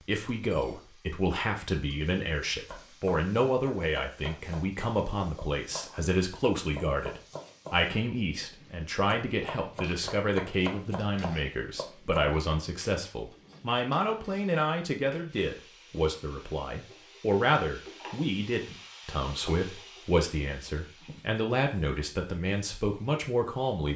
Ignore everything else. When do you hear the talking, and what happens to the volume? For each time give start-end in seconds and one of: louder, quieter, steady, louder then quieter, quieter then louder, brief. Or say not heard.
0.0-23.9 steady.